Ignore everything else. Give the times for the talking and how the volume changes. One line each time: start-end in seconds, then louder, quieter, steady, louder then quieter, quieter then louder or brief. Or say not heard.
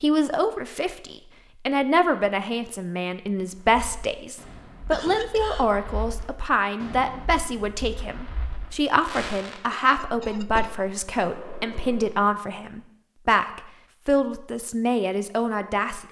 0.0-16.0 steady.